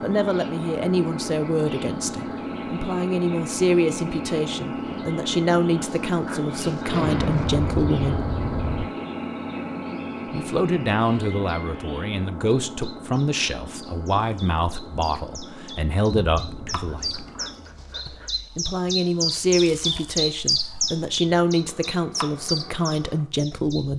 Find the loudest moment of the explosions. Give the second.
7 s.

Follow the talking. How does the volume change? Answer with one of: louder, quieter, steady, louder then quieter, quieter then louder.
steady.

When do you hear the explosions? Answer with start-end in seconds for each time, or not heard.
6.8-8.8, 16.1-17.6.